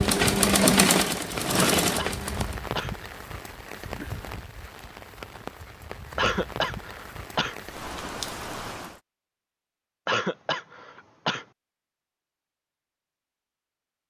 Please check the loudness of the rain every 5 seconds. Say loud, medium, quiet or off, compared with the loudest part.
loud, loud, off.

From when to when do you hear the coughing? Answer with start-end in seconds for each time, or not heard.
1.6-3.0, 6.2-7.5, 10.1-11.4.